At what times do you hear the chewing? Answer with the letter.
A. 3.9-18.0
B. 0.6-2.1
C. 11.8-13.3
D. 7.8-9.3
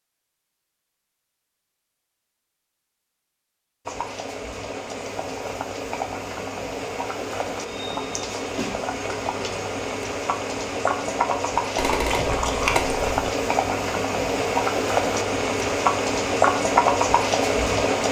C.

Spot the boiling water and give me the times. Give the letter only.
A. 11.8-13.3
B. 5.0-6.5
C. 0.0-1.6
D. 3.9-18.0
D.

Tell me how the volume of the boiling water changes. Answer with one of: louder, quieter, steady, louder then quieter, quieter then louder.
louder.